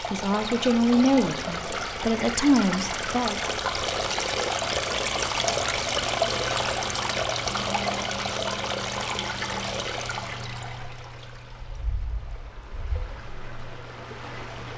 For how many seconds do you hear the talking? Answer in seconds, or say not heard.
3 s.